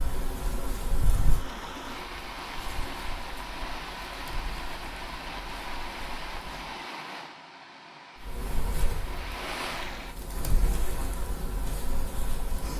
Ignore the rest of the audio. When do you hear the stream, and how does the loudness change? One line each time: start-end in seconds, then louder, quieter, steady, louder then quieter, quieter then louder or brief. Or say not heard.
0.0-10.2 steady.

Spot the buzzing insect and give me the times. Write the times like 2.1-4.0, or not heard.
0.0-6.8, 8.2-12.7.